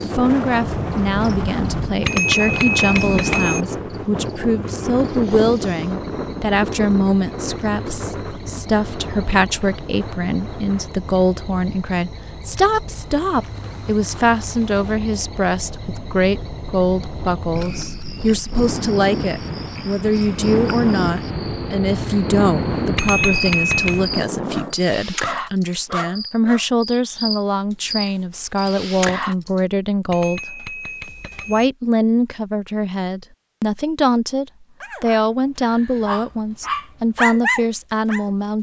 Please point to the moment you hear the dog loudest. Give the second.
37 s.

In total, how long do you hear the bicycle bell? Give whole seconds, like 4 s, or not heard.
4 s.